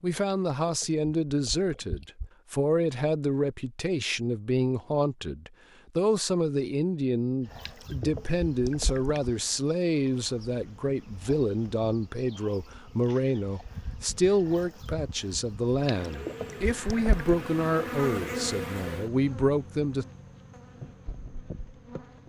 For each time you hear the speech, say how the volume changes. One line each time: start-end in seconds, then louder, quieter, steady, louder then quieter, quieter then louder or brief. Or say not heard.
0.0-20.1 steady.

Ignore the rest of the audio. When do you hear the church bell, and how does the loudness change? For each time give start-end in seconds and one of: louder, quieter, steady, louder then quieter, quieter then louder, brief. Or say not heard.
not heard.